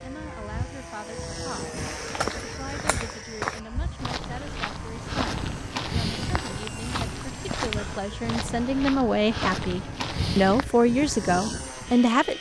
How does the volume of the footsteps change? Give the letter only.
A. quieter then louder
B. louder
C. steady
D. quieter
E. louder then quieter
C.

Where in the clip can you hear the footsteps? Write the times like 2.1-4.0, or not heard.
1.8-10.7.